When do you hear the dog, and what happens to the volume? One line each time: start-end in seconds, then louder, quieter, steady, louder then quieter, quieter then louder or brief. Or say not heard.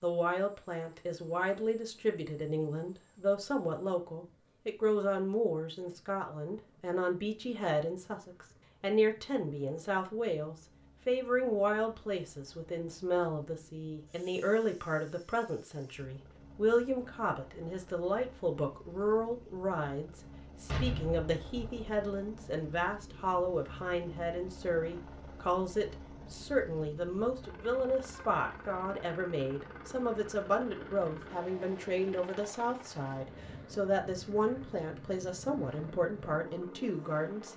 not heard.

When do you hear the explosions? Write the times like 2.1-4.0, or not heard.
20.6-22.0.